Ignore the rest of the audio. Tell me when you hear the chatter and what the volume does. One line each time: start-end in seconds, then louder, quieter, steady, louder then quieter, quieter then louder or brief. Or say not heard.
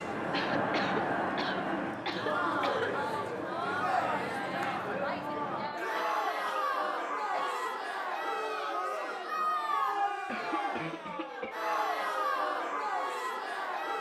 0.0-13.9 steady.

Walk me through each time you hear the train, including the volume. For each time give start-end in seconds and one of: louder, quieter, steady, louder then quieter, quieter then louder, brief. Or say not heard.
0.0-5.7 steady.